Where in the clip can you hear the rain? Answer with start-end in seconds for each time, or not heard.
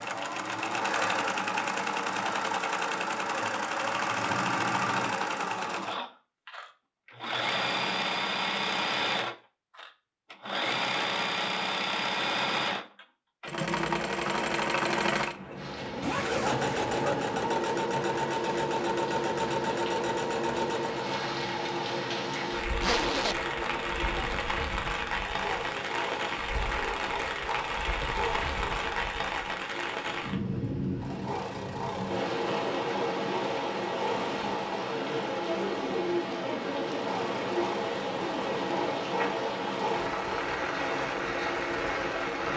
15.6-42.5.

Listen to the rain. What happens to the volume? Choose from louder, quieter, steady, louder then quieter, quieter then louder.
louder.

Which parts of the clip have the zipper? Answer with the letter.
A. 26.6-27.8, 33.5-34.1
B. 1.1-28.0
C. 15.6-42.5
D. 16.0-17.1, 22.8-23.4
D.